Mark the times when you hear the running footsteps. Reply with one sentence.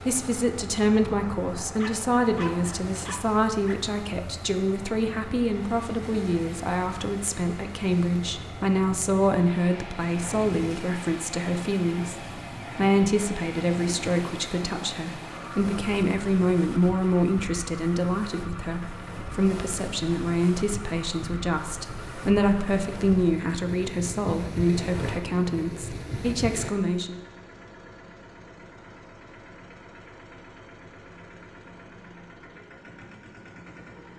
The running footsteps can't be heard in this clip.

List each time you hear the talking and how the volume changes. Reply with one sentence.
The talking can be heard from 0.0 to 27.2 s, at a steady volume.